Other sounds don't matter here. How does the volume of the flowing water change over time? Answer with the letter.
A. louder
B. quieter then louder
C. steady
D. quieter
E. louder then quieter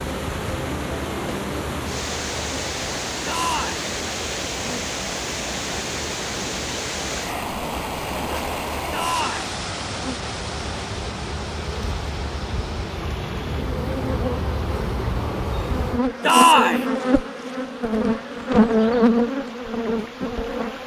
D.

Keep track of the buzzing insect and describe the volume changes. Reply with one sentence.
The loudness of the buzzing insect goes up.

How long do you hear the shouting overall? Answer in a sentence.
You can hear the shouting for 2 seconds altogether.